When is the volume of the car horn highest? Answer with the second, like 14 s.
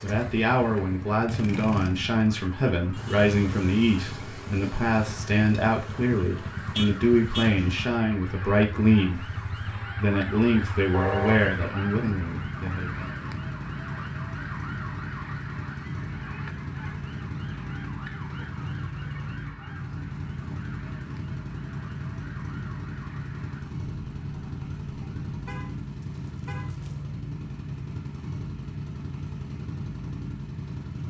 11 s.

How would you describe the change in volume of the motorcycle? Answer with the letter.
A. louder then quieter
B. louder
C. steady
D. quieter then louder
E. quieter
C.